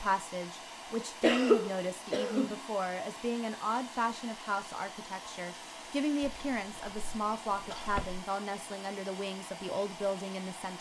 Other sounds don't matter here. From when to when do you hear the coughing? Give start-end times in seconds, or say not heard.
1.2-2.5, 6.2-8.2.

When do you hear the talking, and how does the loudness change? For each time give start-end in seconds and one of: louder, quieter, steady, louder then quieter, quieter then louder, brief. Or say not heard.
0.0-10.7 steady.